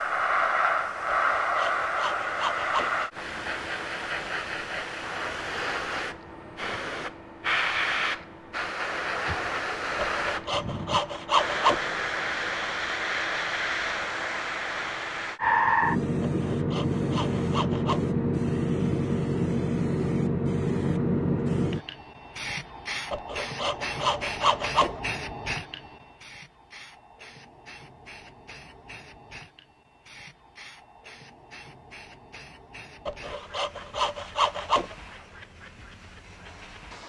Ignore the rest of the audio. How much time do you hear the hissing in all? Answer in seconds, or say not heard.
37 s.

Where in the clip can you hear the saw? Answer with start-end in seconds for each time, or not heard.
1.1-3.0, 9.9-11.9, 16.2-18.1, 23.1-25.0, 33.0-35.0.